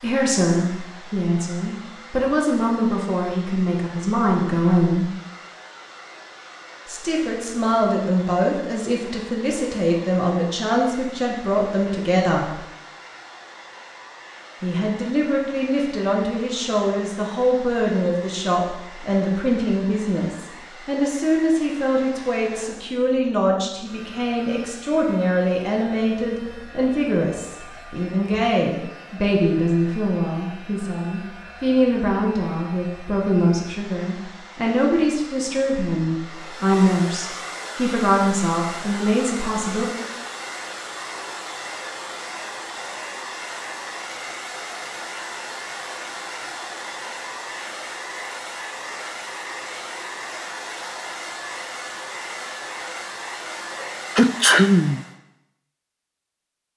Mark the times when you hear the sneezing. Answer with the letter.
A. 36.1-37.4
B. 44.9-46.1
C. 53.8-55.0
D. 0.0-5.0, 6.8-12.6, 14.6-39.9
C.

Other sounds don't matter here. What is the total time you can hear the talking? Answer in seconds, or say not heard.
36 s.